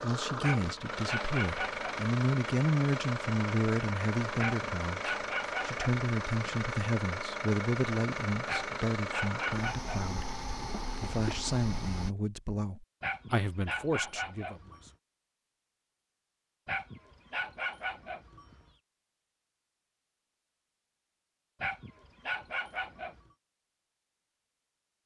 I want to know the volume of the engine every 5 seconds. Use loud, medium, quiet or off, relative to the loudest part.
loud, loud, loud, off, off.